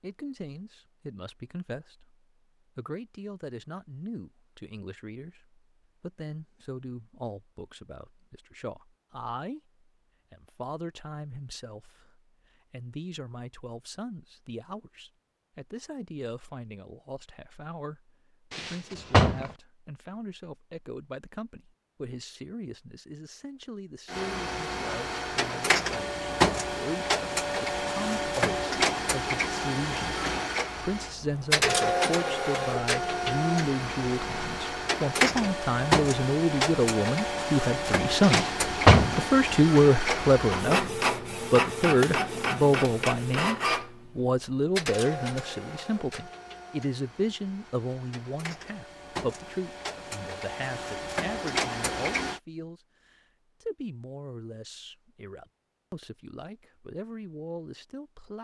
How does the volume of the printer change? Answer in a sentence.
The volume of the printer goes down.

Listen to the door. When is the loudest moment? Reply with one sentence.
The loudest moment of the door is at 39 seconds.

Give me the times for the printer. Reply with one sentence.
The printer can be heard from 24.1 to 52.4 s.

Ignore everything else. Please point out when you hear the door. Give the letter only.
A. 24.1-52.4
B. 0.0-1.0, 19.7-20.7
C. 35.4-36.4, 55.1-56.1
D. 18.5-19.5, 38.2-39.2
D.